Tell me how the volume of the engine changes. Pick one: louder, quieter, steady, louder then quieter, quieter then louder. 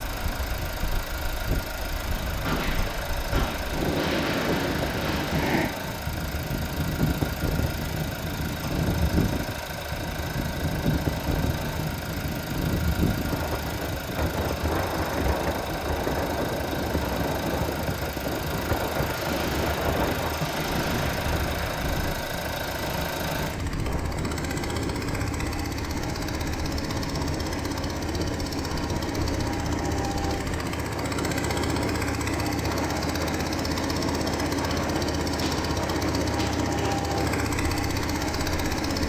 louder.